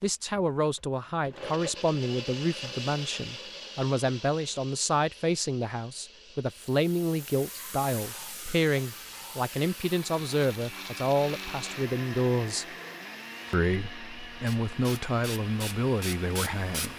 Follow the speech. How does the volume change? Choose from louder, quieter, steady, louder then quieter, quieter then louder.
steady.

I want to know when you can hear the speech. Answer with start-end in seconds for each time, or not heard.
0.0-12.7, 13.5-16.9.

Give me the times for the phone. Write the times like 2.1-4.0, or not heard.
not heard.